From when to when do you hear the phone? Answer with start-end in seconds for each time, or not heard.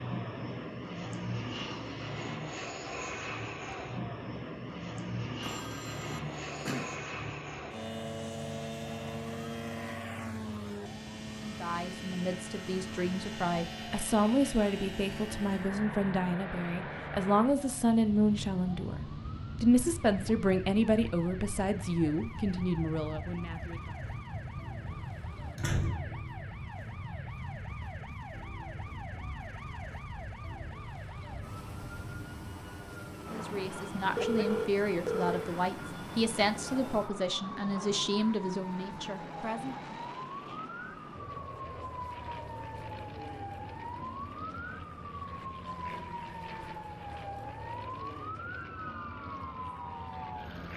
5.4-7.0, 34.1-35.5.